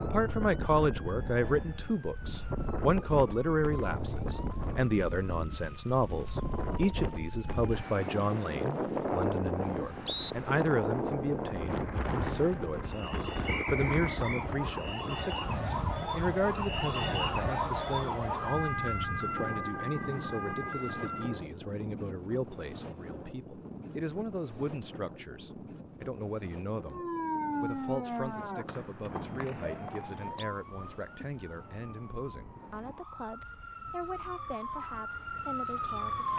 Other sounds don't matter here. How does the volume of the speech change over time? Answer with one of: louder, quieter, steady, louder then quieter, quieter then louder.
quieter.